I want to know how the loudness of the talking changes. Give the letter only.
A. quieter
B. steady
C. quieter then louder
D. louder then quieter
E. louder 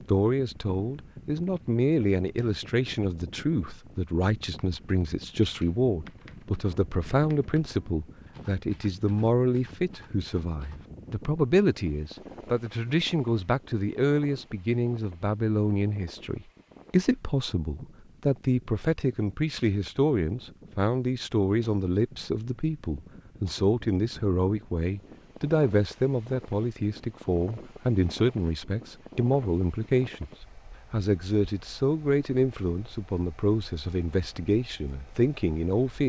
B.